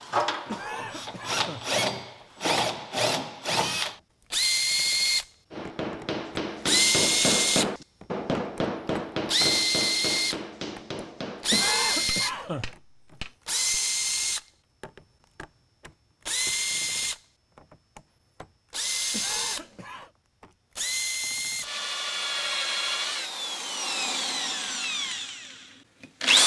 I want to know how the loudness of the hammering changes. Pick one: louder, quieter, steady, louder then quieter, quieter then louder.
quieter.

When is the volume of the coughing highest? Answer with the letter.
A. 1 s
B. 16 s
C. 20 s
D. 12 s
D.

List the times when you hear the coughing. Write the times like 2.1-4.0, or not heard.
0.5-1.7, 11.5-12.8, 19.1-20.1.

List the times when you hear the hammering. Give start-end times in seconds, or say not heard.
5.5-13.8.